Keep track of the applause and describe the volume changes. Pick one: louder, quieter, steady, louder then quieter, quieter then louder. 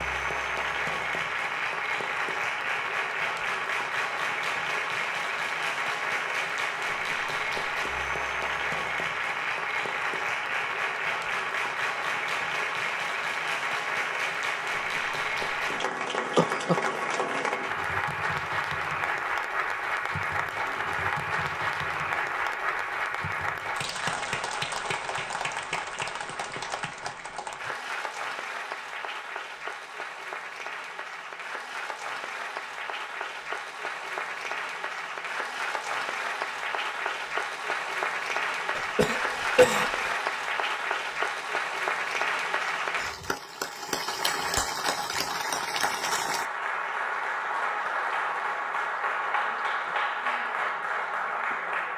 steady.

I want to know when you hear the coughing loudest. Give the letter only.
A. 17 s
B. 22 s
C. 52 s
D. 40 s
D.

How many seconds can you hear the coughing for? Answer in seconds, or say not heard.
2 s.